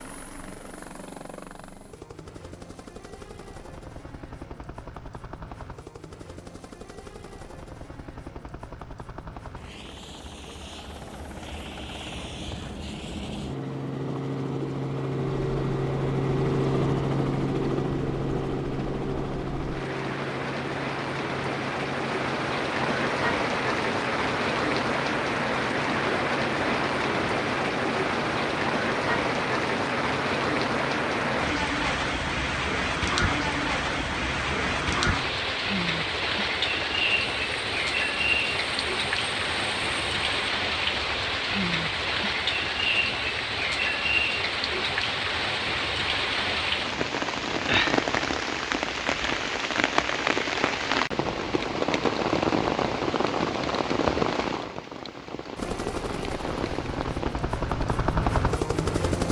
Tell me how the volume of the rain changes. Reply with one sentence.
The volume of the rain stays about the same.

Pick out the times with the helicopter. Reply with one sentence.
The helicopter can be heard from 0.0 to 40.5 s and from 55.5 to 59.2 s.